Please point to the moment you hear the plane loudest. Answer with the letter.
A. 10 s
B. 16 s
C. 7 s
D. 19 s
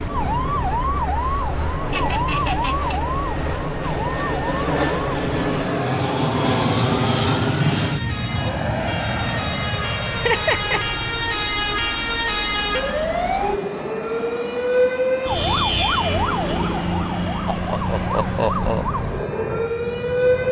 C.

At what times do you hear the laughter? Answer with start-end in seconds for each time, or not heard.
1.9-3.0, 10.1-10.8, 17.5-18.9.